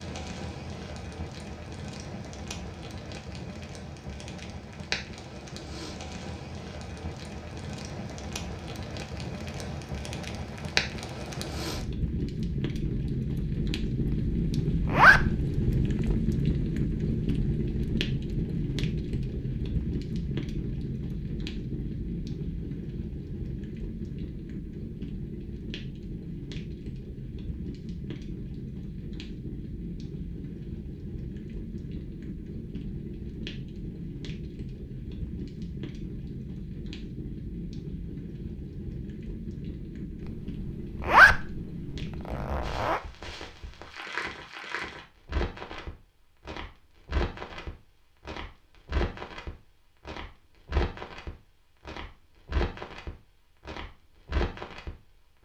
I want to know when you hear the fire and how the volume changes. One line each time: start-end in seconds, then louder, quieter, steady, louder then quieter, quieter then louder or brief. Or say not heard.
0.0-55.4 louder then quieter.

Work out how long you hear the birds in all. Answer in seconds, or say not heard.
not heard.